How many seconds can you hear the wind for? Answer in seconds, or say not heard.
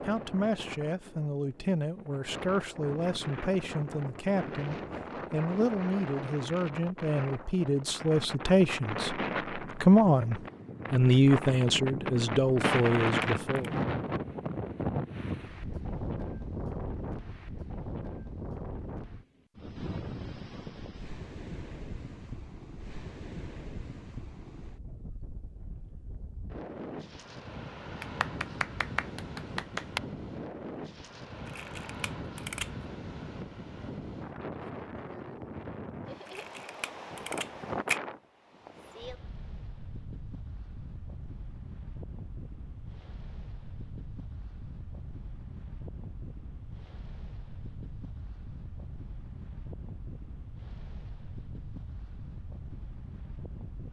54 s.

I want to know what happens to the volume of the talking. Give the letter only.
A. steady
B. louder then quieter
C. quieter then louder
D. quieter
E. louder
E.